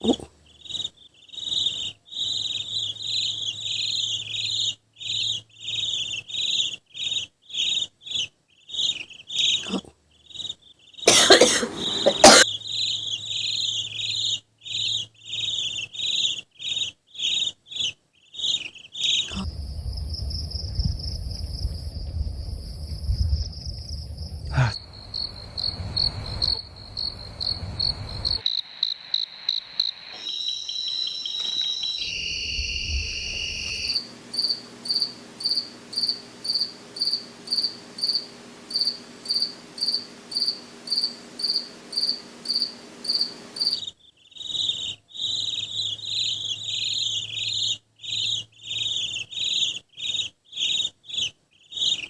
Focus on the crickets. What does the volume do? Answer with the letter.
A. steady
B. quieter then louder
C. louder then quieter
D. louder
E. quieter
A.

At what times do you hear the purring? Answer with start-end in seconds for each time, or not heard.
not heard.